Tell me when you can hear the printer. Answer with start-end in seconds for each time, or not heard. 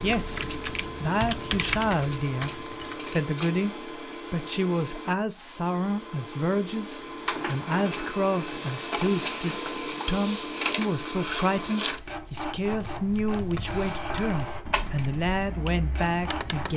0.0-16.7.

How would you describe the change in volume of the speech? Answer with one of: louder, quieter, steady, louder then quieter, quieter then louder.
steady.